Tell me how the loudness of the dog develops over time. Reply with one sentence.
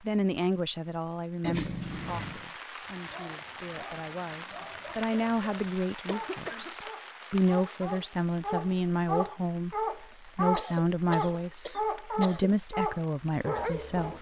The loudness of the dog goes up.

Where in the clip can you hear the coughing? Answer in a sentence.
The coughing can be heard from 1.4 to 2.4 s, from 6.0 to 6.8 s and from 10.1 to 12.6 s.